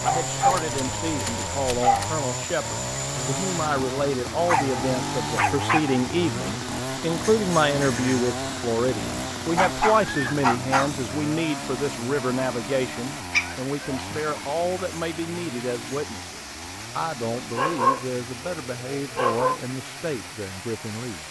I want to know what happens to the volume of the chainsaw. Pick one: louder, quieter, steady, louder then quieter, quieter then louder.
quieter.